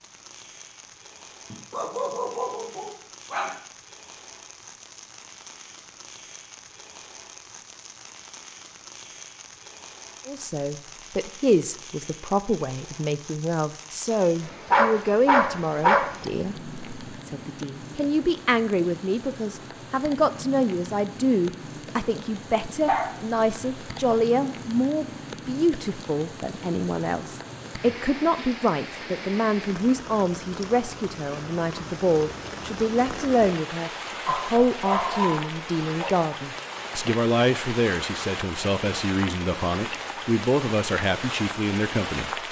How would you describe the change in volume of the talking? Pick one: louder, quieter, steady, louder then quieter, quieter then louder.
steady.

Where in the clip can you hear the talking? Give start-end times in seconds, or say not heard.
10.2-42.3.